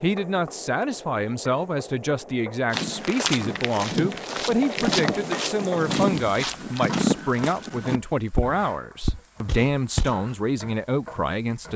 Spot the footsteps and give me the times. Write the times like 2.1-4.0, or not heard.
2.7-10.2.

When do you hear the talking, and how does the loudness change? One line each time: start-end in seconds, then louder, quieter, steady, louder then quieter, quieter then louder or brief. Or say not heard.
0.0-11.7 steady.